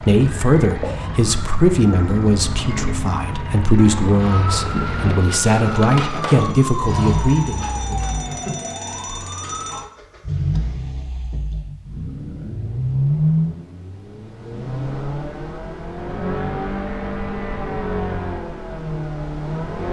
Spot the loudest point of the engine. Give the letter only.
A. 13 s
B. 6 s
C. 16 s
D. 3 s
A.